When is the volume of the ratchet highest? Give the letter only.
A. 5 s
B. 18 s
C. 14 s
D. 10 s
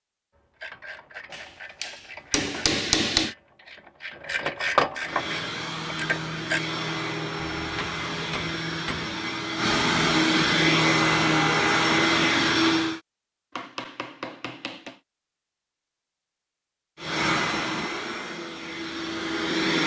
A.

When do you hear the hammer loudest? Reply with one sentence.
The loudest moment of the hammer is at 3 seconds.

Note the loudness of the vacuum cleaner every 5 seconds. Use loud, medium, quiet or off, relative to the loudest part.
off, medium, loud, medium.